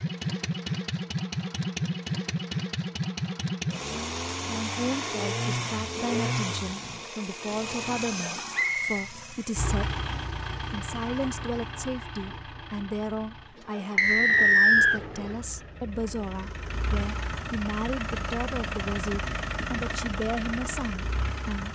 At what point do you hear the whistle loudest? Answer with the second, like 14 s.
15 s.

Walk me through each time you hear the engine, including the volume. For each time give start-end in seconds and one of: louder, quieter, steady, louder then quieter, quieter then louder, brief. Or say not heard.
0.0-21.7 quieter then louder.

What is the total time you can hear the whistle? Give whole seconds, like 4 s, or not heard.
2 s.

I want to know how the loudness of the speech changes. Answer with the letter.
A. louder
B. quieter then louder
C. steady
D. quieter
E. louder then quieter
C.